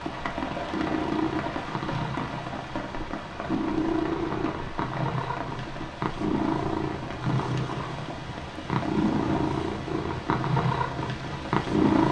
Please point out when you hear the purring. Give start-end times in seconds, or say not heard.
0.0-12.0.